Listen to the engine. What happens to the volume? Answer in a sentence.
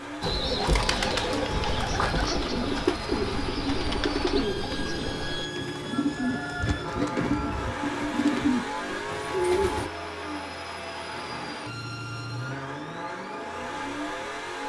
The loudness of the engine stays about the same.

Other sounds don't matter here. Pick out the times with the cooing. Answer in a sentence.
The cooing can be heard from 0.2 to 9.9 s.